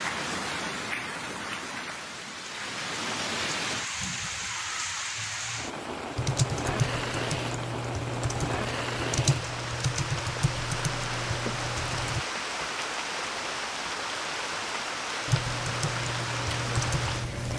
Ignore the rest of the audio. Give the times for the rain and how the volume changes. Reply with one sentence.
You can hear the rain from 0.0 to 17.5 s, at a steady volume.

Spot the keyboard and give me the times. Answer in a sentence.
You can hear the keyboard from 6.2 to 12.2 s and from 15.2 to 17.5 s.